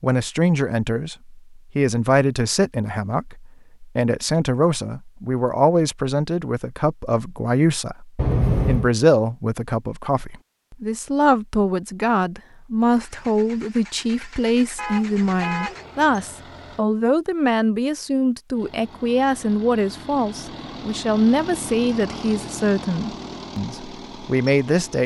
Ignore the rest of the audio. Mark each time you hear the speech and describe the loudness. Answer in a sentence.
You can hear the speech from 0.0 to 25.0 s, at a steady volume.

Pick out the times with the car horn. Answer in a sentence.
The car horn can be heard from 8.2 to 8.9 s and from 14.8 to 16.1 s.